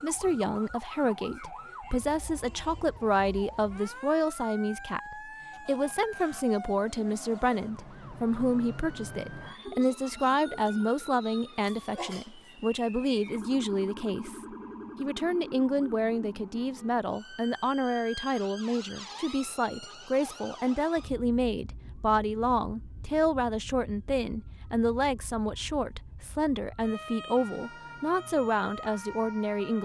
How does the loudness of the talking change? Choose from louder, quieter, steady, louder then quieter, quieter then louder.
steady.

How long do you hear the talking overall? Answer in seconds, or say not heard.
30 s.